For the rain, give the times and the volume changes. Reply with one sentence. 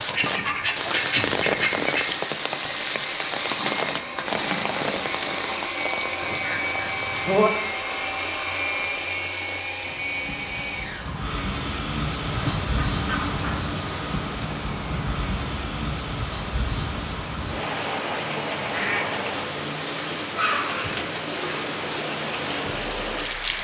The rain can be heard from 0.0 to 23.5 s, getting quieter then louder.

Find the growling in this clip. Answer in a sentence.
The growling can be heard from 3.5 to 5.6 s.